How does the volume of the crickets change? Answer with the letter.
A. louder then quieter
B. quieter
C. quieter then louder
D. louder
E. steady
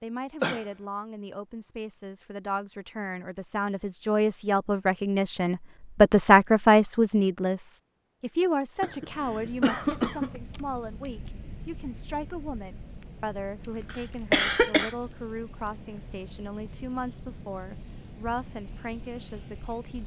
D.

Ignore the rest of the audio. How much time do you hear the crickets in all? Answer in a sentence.
The crickets can be heard for 11 seconds in total.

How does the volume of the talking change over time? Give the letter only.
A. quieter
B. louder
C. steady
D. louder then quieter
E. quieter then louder
D.